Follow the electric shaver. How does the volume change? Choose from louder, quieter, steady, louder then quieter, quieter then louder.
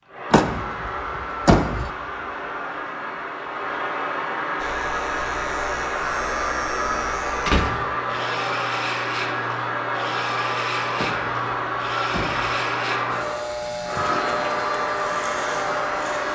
steady.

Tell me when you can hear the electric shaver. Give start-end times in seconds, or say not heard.
4.5-16.3.